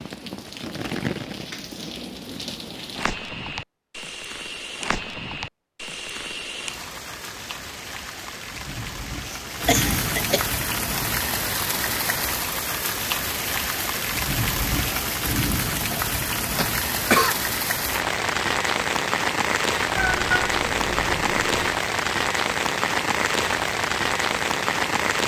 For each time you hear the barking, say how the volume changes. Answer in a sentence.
The barking can't be heard in this clip.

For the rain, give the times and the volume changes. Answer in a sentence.
You can hear the rain from 0.0 to 25.2 s, getting louder.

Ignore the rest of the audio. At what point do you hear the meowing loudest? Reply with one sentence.
The volume of the meowing peaks at 20 seconds.